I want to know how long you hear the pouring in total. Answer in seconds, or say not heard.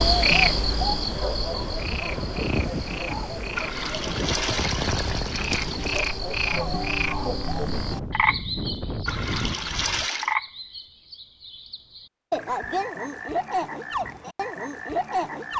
4 s.